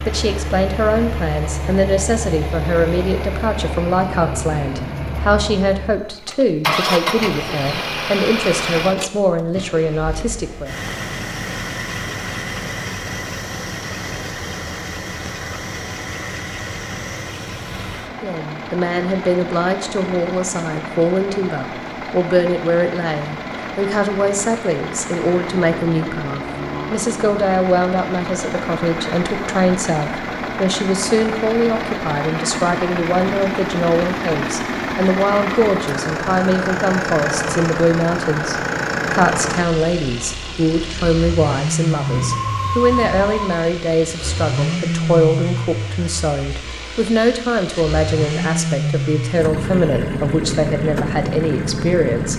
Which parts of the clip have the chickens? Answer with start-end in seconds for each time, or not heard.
41.9-43.5.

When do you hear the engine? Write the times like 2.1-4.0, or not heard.
0.0-52.3.